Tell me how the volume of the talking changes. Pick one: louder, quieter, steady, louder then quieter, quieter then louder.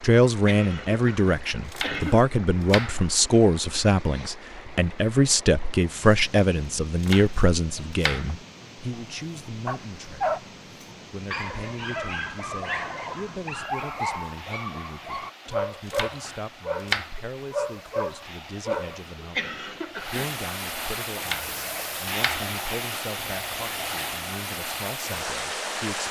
quieter.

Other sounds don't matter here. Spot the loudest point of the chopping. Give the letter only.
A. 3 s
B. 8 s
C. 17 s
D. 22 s
C.